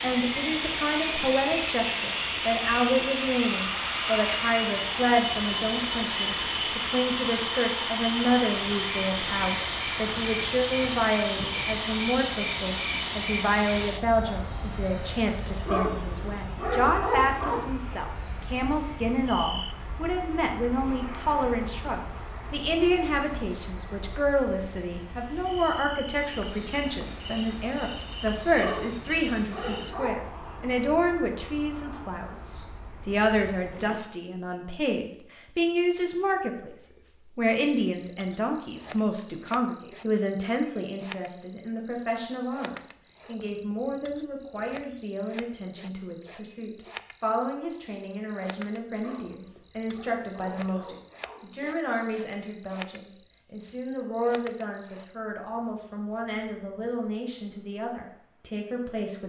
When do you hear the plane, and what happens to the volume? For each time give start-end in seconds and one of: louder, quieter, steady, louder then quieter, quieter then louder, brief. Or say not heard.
0.0-34.0 quieter.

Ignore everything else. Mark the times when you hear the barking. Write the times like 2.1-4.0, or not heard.
15.7-17.7, 28.6-30.1, 49.0-51.5.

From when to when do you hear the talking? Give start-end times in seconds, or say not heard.
0.0-59.2.